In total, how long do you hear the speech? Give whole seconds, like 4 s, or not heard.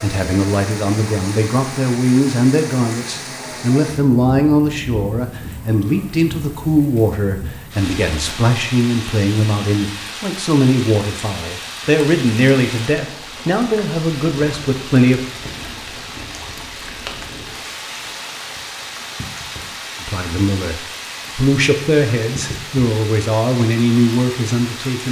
20 s.